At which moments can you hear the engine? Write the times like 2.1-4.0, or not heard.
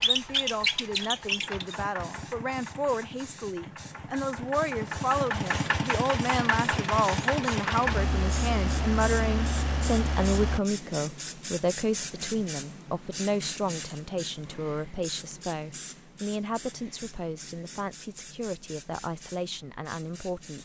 0.0-10.6.